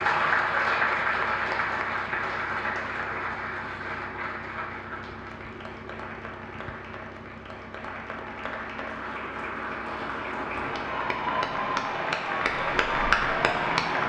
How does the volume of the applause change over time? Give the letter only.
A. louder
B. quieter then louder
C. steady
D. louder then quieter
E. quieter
B.